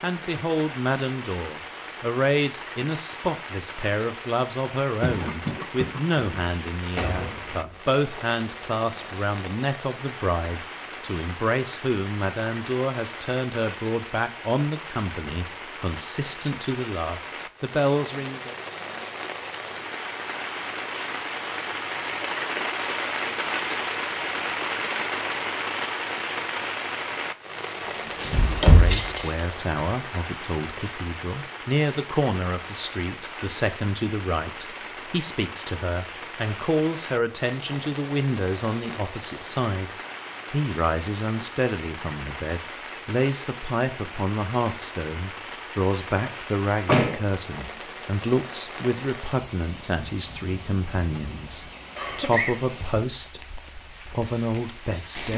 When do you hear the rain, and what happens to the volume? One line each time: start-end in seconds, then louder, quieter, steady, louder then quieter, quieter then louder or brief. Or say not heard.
0.0-55.3 louder then quieter.